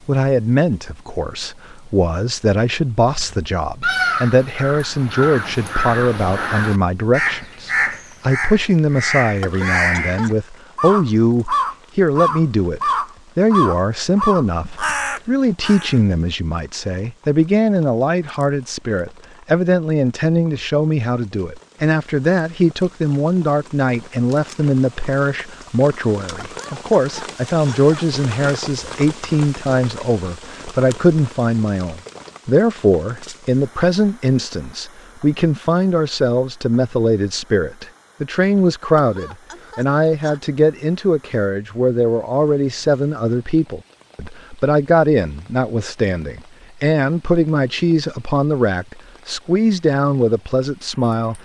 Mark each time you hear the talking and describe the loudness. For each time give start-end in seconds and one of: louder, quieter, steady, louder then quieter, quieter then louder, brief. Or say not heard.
0.1-51.3 steady.